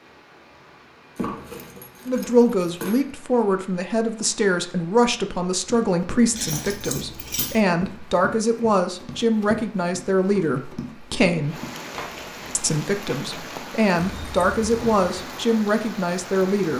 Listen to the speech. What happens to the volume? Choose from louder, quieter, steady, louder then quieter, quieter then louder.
steady.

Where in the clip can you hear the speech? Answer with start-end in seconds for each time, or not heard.
2.0-11.6, 12.6-16.7.